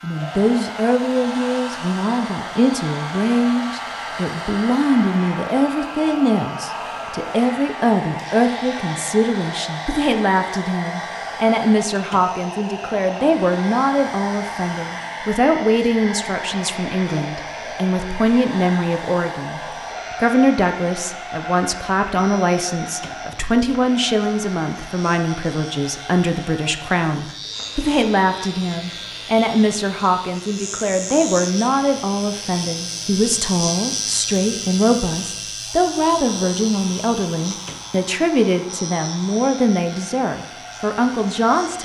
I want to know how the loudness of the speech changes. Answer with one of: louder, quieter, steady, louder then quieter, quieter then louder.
steady.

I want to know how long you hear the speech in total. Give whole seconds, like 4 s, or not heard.
42 s.